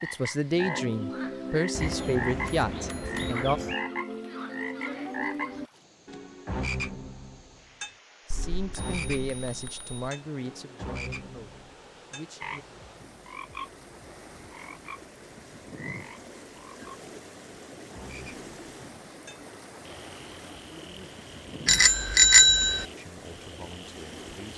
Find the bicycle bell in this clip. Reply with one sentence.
The bicycle bell can be heard from 1.8 to 3.8 s, from 8.3 to 9.9 s and from 21.6 to 22.9 s.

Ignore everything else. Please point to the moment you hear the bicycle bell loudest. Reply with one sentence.
The volume of the bicycle bell peaks at 22 seconds.